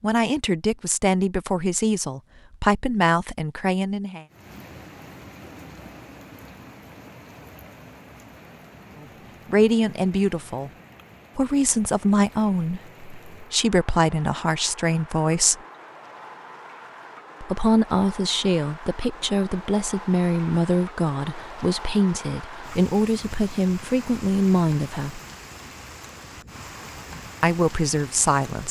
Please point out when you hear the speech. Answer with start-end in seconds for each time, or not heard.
0.0-4.2, 9.4-10.7, 11.3-15.6, 17.4-25.2, 27.4-28.6.